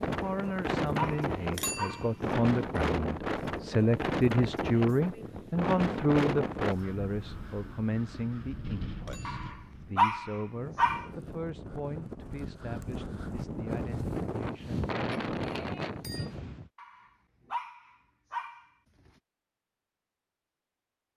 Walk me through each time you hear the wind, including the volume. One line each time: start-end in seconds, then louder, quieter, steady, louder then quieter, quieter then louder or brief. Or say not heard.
0.0-16.7 quieter then louder.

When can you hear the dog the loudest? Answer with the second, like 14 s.
10 s.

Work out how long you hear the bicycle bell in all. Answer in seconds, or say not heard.
3 s.